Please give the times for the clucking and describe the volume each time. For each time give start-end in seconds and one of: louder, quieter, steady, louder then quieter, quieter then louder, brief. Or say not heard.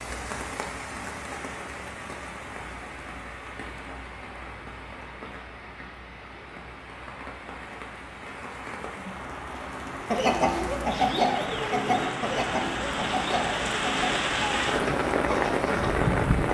10.1-16.0 quieter.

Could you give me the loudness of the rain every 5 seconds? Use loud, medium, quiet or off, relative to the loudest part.
quiet, quiet, medium, loud.